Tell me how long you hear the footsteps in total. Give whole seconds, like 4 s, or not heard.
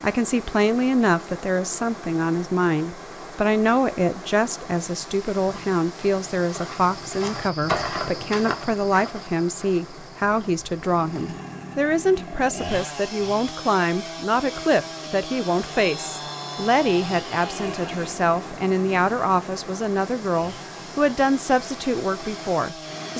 6 s.